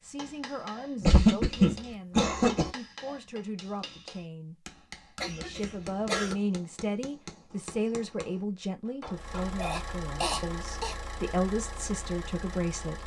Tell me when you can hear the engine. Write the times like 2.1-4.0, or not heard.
9.1-13.0.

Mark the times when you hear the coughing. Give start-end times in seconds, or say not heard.
1.0-2.7, 5.2-6.3, 9.6-10.9.